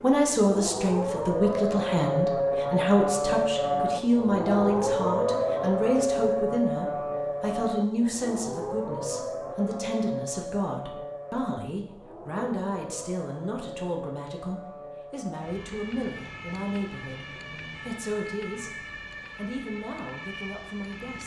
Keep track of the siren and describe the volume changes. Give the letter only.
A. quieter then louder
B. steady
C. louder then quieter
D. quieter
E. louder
D.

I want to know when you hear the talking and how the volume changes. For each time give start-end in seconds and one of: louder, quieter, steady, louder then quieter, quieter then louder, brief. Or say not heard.
0.0-18.7 quieter
19.4-21.2 brief.